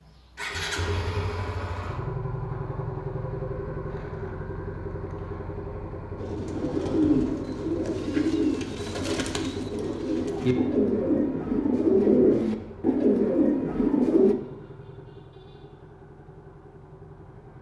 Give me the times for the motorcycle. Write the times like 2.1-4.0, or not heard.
0.0-17.5.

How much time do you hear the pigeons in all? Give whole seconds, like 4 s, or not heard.
8 s.